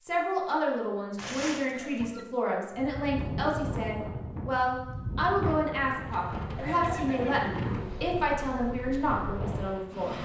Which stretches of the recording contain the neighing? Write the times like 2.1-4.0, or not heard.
1.1-2.2, 6.5-8.1.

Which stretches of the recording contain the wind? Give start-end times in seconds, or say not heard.
2.7-10.2.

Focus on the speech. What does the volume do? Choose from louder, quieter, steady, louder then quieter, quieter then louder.
steady.